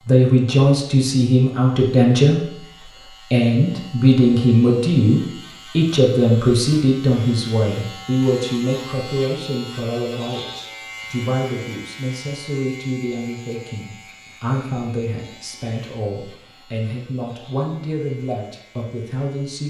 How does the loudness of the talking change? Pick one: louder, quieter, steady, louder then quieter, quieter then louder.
quieter.